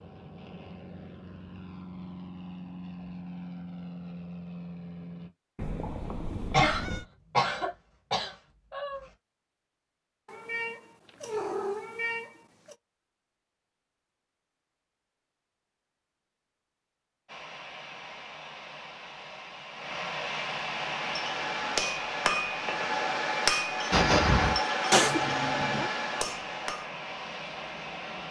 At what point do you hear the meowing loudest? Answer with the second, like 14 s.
25 s.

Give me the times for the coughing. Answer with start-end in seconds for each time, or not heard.
6.5-9.1, 23.9-24.6.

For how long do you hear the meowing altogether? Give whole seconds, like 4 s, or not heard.
5 s.